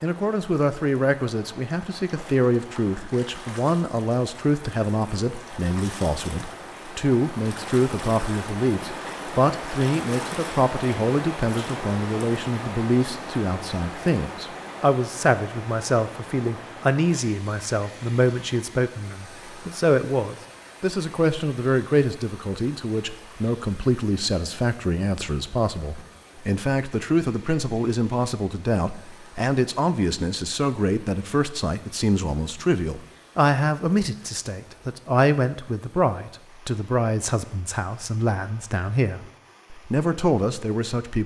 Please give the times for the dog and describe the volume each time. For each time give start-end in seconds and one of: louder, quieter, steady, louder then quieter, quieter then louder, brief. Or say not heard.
not heard.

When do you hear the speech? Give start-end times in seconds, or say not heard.
0.0-41.2.